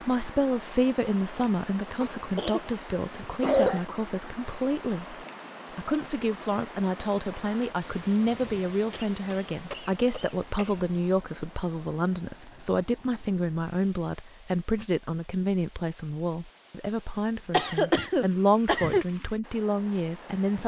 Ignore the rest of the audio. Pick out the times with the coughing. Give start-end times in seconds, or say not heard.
2.0-4.0, 8.9-10.9, 17.5-19.1.